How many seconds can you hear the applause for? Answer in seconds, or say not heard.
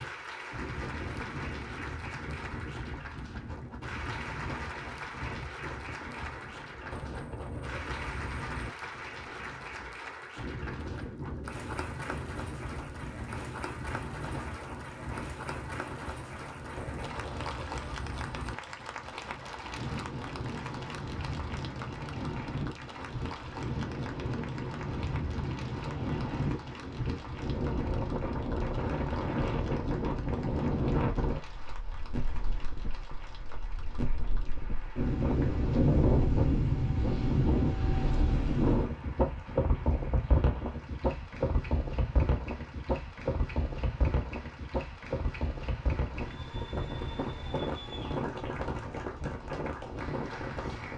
51 s.